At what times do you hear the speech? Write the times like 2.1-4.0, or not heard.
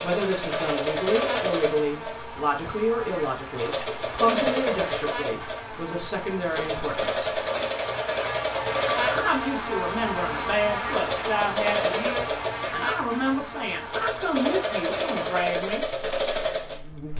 0.0-7.2, 9.0-15.8.